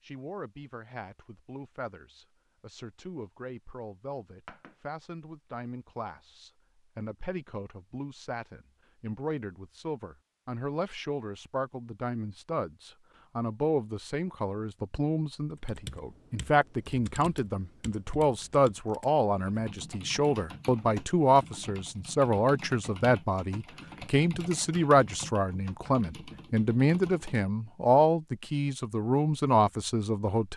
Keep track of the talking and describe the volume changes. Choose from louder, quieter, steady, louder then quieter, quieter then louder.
louder.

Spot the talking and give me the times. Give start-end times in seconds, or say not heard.
0.0-30.5.